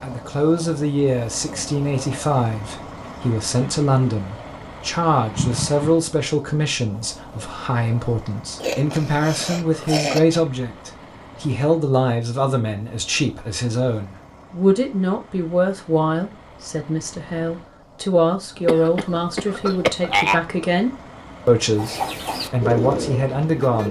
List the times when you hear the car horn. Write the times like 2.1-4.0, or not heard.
not heard.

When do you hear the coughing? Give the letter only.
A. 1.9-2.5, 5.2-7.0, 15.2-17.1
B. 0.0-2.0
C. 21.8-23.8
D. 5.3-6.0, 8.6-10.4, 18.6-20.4
D.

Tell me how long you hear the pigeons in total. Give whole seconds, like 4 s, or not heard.
2 s.